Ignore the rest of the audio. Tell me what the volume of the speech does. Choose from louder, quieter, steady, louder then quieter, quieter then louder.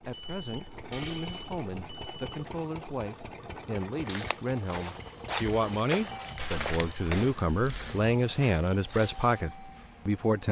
louder.